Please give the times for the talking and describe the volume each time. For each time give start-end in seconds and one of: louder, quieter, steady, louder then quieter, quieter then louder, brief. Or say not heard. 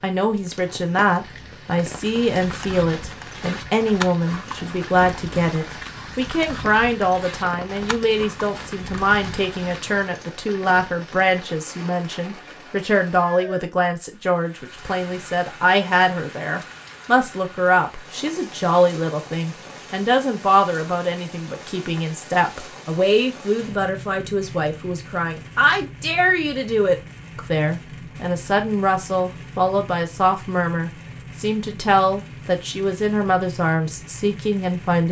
0.0-35.0 steady.